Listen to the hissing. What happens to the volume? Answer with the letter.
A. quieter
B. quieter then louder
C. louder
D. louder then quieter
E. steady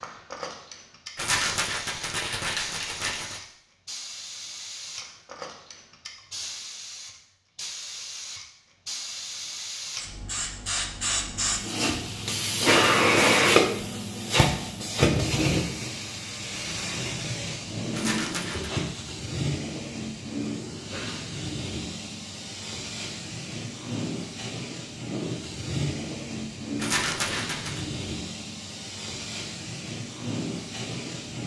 D.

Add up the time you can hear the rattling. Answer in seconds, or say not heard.
4 s.